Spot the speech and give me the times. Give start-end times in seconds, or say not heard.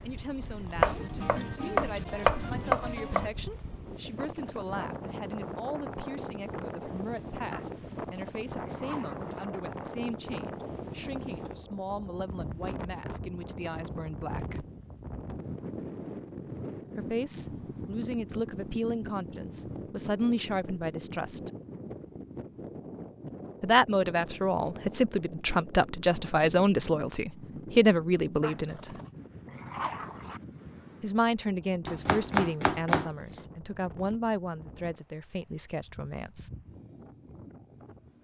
0.0-14.7, 16.9-21.5, 23.6-28.9, 31.0-36.5.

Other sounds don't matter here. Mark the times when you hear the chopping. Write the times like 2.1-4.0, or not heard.
0.8-3.3, 31.9-33.4.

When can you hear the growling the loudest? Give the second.
30 s.